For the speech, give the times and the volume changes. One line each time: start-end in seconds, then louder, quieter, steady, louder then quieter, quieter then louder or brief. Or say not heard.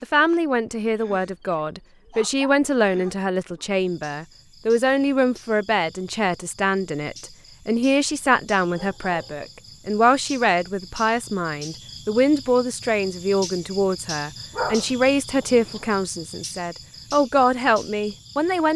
0.0-18.7 steady.